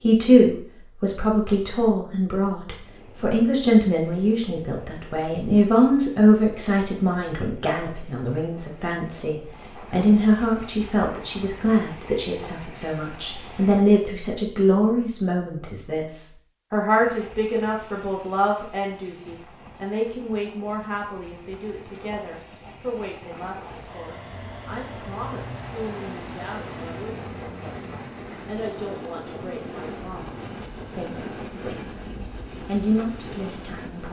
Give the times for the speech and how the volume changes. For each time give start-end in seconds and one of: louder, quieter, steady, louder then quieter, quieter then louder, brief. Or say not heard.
0.0-34.0 quieter.